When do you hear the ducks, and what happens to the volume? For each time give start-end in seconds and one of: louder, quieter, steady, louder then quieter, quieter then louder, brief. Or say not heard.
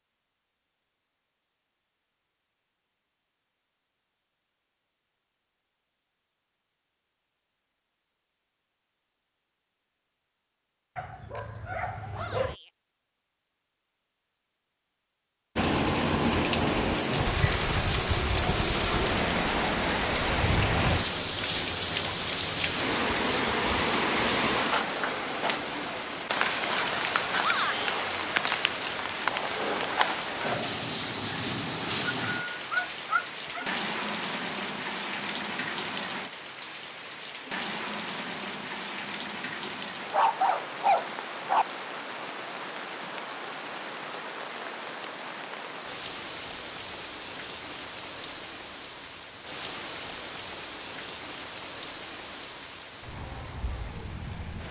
not heard.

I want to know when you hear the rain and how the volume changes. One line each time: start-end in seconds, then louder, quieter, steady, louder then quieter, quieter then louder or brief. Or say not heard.
15.6-54.6 quieter.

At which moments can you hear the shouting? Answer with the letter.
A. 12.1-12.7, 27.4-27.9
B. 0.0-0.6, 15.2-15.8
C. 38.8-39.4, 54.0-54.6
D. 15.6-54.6
A.